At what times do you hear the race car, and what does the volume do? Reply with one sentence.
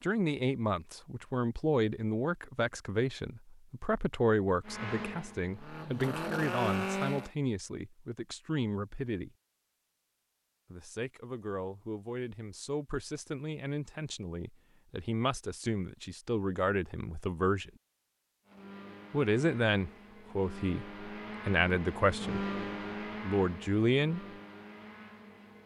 You can hear the race car briefly from 4.7 to 7.3 s; and from 18.4 to 25.6 s, getting louder then quieter.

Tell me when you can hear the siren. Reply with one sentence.
The siren can't be heard in this clip.